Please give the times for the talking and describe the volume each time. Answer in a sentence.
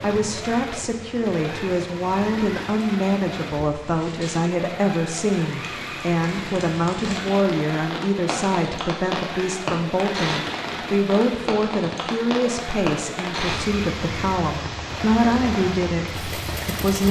You can hear the talking from 0.0 to 17.0 s, at a steady volume.